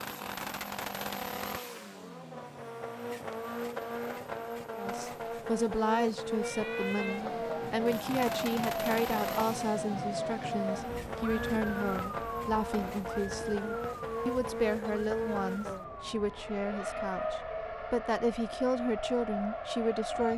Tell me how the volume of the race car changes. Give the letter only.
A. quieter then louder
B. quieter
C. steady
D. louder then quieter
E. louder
C.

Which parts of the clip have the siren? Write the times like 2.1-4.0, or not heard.
6.4-20.3.